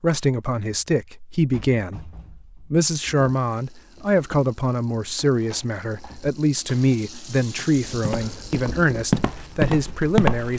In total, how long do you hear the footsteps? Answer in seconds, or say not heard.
3 s.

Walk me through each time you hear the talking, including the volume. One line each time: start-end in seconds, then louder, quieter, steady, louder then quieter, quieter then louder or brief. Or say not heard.
0.0-10.5 steady.